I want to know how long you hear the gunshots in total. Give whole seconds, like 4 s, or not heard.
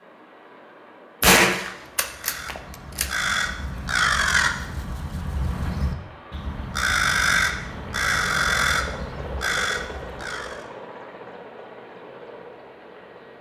2 s.